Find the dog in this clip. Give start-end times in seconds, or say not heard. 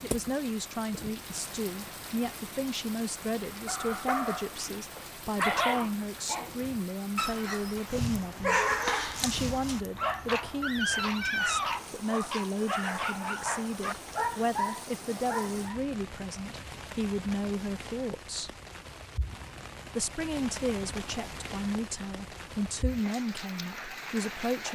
3.5-15.8.